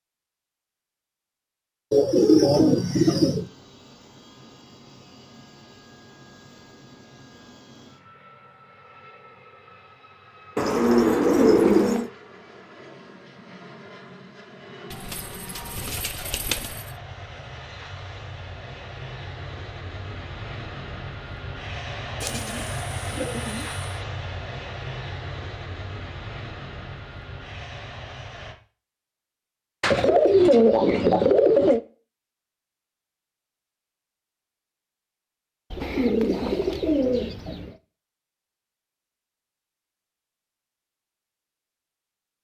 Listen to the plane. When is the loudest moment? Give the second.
23 s.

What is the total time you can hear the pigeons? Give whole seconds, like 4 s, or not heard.
11 s.